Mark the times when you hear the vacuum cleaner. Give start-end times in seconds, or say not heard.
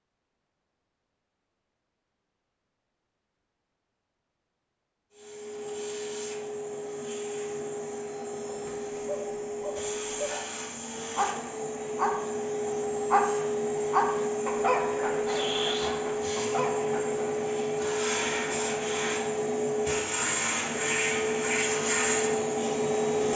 5.1-23.3.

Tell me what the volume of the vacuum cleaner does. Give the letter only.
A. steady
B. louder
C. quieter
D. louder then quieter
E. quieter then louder
B.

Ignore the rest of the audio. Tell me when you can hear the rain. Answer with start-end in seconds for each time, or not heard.
not heard.